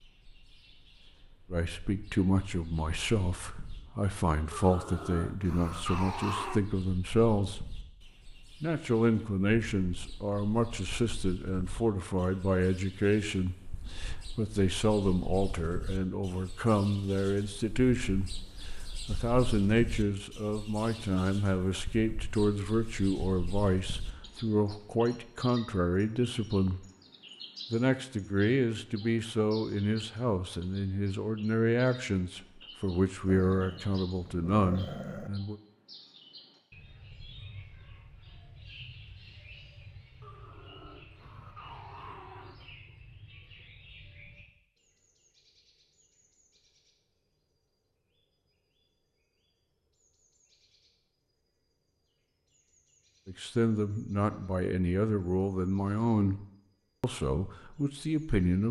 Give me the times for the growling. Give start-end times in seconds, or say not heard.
4.5-6.6, 33.2-35.3, 40.2-43.0.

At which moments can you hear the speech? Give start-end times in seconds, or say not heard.
1.5-7.7, 8.6-26.9, 27.7-35.5, 53.2-56.4, 57.0-58.6.